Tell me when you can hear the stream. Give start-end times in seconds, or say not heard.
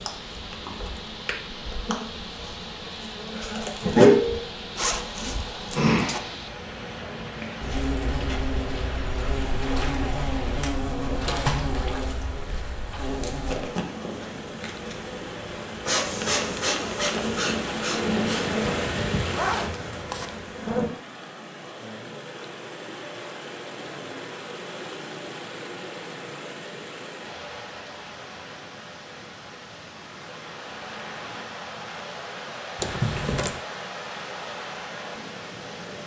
0.0-36.0.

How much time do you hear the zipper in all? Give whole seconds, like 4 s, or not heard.
4 s.